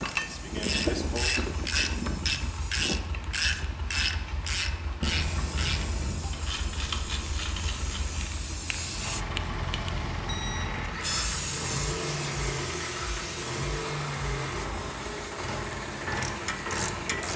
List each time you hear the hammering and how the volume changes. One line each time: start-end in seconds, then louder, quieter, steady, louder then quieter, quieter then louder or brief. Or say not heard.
not heard.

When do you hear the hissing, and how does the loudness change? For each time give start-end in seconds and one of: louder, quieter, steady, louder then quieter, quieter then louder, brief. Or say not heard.
0.1-17.2 louder then quieter.